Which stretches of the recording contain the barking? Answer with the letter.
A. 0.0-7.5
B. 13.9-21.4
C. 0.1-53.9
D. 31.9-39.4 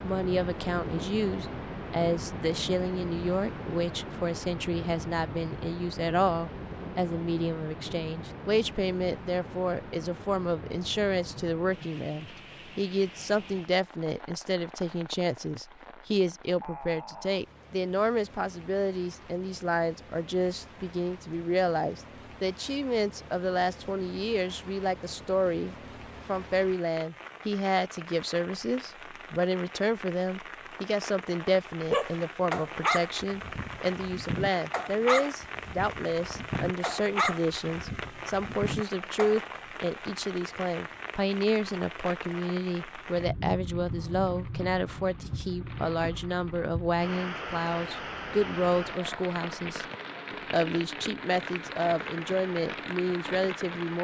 D.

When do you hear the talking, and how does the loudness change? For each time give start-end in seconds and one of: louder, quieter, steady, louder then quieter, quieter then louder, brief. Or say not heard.
0.1-53.9 steady.